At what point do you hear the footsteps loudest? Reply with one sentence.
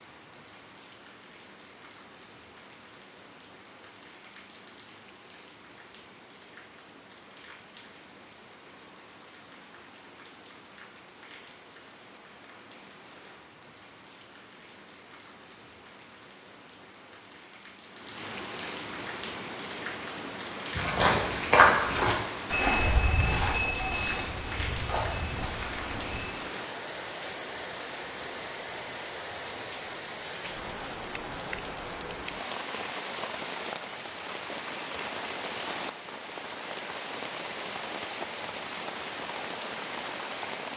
The volume of the footsteps peaks at 22 seconds.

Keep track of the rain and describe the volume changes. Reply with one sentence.
The volume of the rain goes up.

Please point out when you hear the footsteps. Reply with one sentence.
The footsteps can be heard from 20.8 to 26.3 s.